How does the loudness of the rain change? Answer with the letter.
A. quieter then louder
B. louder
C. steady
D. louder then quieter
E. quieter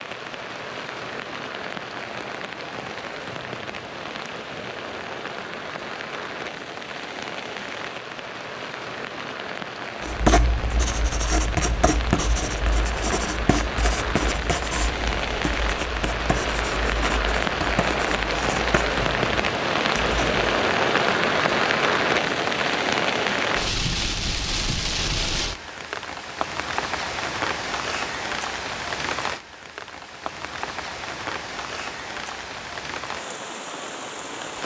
D.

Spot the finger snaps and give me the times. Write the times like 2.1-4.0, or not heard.
not heard.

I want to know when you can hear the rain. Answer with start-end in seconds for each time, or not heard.
0.0-34.6.